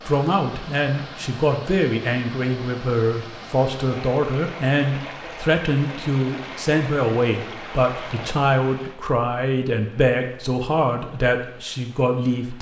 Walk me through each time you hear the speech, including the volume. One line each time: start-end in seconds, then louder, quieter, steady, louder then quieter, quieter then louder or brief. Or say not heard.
0.1-12.5 steady.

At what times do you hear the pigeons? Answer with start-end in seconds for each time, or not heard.
not heard.